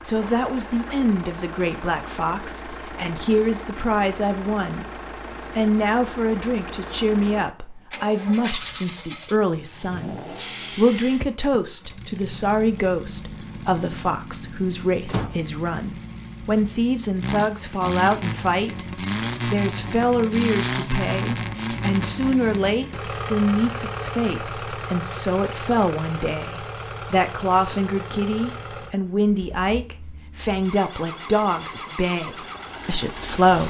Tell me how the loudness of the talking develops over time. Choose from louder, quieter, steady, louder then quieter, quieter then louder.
steady.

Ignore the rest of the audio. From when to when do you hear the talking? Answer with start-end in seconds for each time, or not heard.
0.1-4.9, 5.5-10.2, 10.8-33.6.